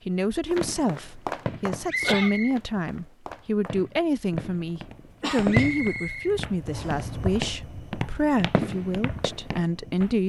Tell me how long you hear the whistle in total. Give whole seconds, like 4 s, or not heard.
2 s.